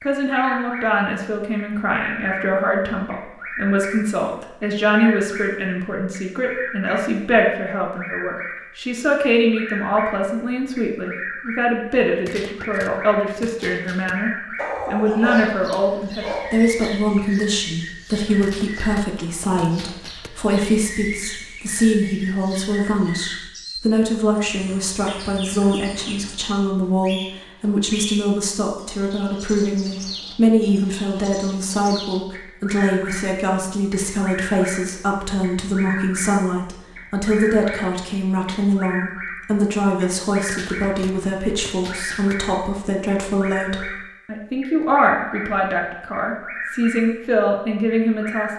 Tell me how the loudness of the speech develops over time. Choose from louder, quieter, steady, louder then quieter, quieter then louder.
steady.